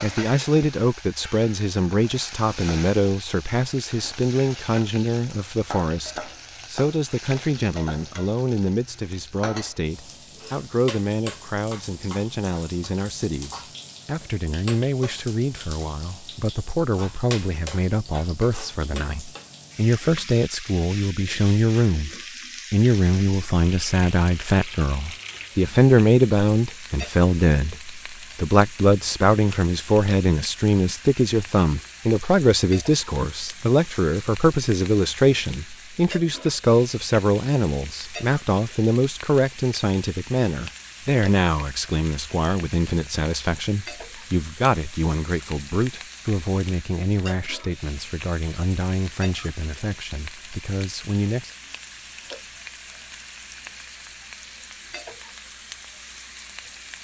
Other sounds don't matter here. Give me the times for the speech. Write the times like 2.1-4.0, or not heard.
0.0-22.1, 22.7-51.5.